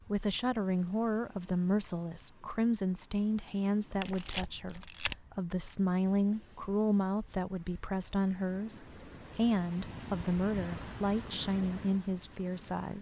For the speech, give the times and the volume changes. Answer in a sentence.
You can hear the speech from 0.1 to 12.9 s, at a steady volume.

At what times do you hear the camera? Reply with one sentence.
The camera can be heard from 4.0 to 5.2 s.